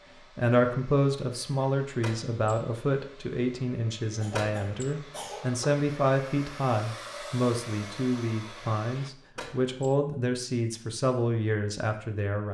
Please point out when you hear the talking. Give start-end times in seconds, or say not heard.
0.3-12.4.